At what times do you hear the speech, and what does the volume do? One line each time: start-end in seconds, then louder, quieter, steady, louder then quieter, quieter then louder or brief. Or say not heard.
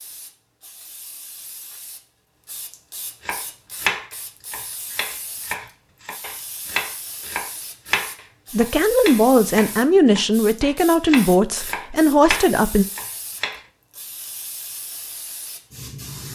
8.5-12.8 steady.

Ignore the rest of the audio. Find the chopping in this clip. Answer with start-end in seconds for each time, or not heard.
3.2-13.6.